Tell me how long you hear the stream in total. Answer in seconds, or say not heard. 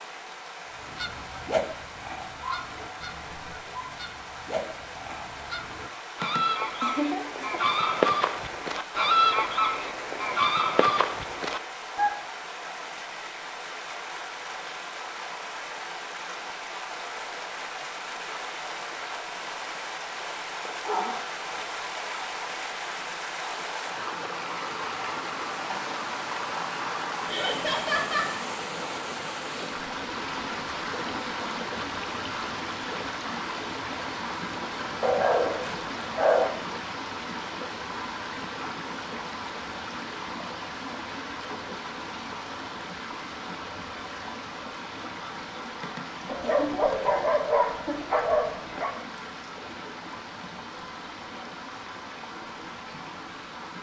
54 s.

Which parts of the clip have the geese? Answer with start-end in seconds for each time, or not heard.
0.8-12.3.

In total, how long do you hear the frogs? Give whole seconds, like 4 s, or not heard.
not heard.